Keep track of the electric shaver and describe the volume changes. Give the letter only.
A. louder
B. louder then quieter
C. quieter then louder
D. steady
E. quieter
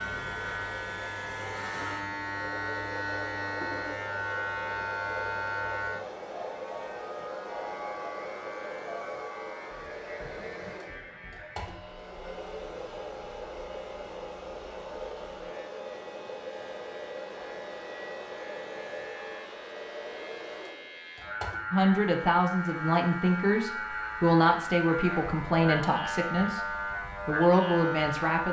C.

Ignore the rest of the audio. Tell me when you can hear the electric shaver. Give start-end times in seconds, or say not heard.
0.0-28.4.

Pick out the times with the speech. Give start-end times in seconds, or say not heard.
21.7-28.4.